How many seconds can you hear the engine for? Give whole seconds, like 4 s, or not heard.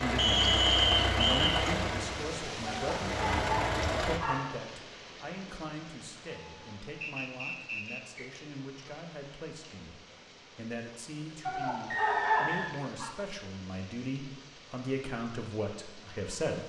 4 s.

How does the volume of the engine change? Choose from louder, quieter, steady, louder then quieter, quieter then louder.
quieter then louder.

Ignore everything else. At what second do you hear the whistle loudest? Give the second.
1 s.